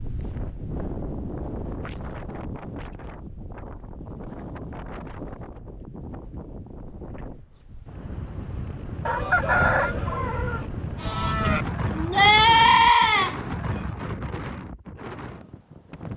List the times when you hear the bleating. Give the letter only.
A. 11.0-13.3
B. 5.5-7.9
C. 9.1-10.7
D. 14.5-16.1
A.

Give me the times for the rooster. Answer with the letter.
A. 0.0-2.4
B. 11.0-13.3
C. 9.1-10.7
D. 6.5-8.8
C.